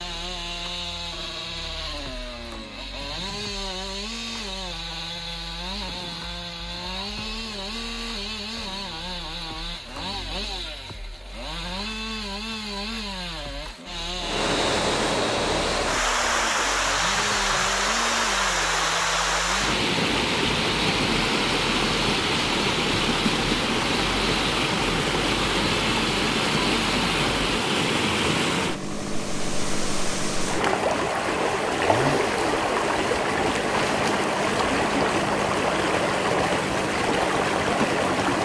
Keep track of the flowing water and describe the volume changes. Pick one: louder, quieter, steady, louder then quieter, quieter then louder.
steady.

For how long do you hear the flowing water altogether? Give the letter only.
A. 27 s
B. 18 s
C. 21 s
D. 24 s
D.